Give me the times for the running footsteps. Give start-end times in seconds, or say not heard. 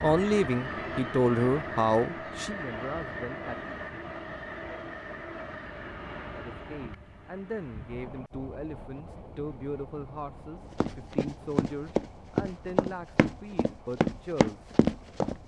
10.7-15.3.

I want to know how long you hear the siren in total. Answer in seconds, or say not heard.
not heard.